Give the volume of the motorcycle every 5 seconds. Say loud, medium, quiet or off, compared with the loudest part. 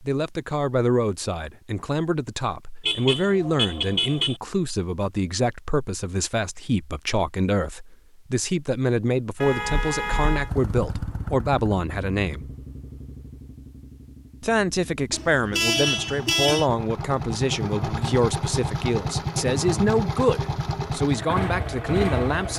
off, off, medium, loud, loud.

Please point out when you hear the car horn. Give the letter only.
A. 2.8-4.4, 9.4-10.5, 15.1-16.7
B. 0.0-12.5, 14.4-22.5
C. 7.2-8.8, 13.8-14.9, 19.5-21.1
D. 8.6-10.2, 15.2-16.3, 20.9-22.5
A.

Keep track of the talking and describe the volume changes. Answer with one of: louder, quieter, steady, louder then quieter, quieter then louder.
steady.